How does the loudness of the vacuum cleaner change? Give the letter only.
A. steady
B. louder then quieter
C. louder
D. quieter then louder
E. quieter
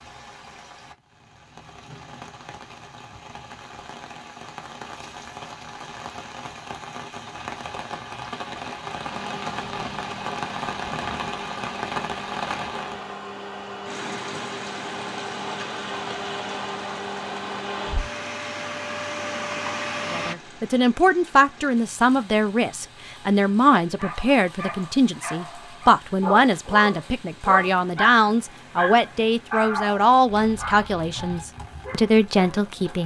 C.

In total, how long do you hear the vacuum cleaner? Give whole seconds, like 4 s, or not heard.
11 s.